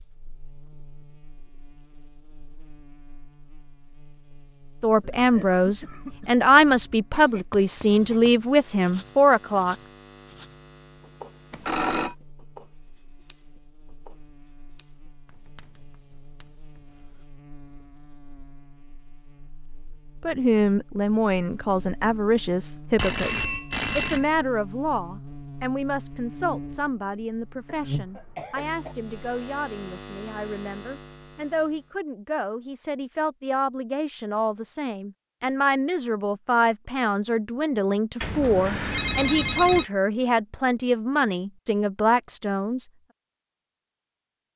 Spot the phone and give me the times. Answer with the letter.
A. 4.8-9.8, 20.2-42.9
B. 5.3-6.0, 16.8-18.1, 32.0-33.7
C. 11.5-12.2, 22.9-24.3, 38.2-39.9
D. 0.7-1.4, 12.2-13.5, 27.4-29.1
C.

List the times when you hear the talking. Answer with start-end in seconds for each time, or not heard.
4.8-9.8, 20.2-42.9.